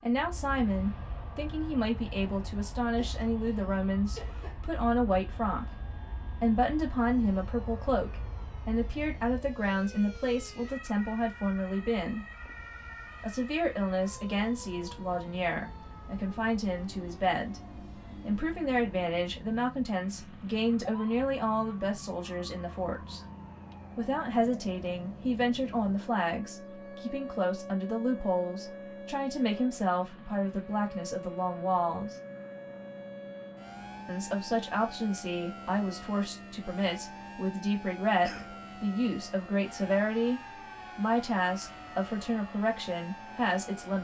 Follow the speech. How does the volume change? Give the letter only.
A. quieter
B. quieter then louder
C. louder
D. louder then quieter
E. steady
E.